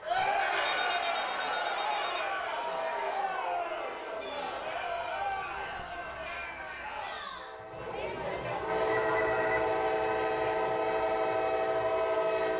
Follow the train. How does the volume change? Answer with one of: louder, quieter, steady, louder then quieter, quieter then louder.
louder.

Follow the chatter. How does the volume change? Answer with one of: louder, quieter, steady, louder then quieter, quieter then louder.
quieter.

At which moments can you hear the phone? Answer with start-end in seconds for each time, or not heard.
0.6-2.2, 4.3-6.3, 8.8-9.7.